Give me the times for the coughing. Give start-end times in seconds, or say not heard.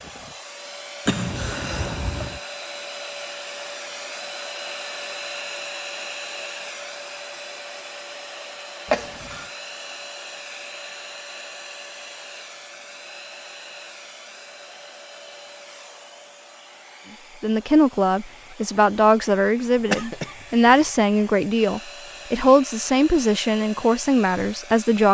1.1-2.4, 8.8-9.5, 19.8-20.9.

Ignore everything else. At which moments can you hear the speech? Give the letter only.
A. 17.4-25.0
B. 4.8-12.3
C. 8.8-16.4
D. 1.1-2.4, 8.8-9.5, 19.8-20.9
A.